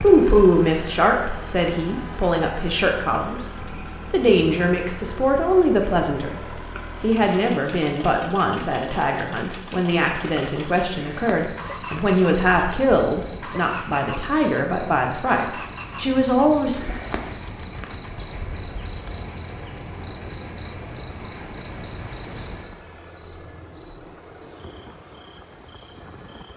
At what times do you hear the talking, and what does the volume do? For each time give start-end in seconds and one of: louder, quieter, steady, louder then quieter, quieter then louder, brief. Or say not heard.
0.0-16.9 steady.